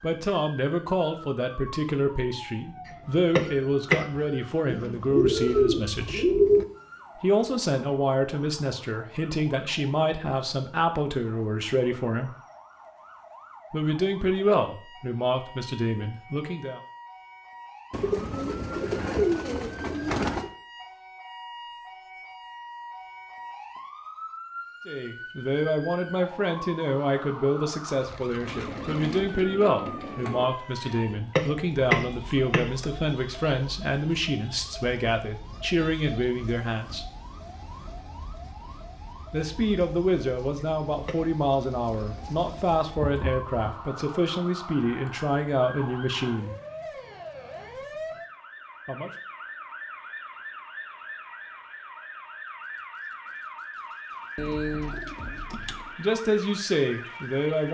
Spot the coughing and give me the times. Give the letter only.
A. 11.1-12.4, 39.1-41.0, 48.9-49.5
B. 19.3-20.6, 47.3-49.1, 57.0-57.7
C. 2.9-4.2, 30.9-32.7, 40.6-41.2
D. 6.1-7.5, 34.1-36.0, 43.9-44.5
C.